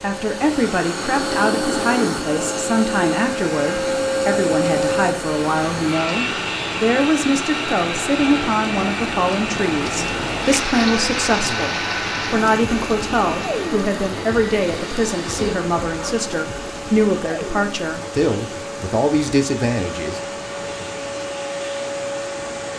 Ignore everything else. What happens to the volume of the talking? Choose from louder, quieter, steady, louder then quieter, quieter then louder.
steady.